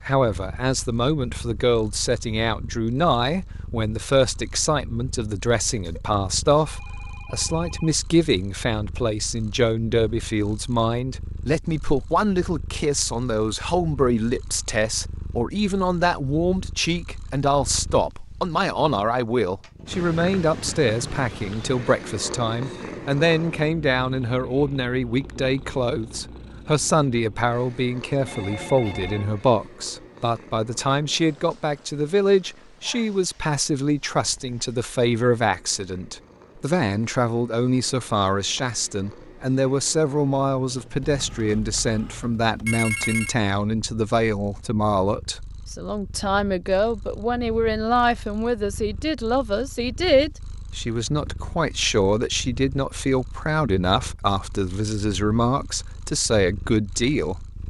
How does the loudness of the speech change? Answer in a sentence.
The volume of the speech stays about the same.